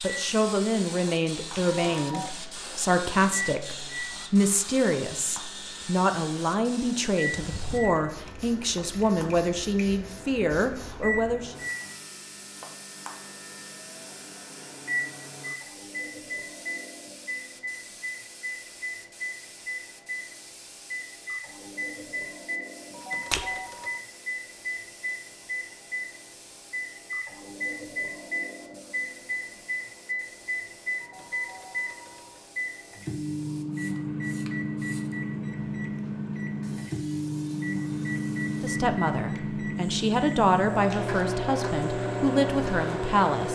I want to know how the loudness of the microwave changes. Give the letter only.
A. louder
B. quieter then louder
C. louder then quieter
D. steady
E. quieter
A.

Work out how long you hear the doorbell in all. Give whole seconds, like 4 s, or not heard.
3 s.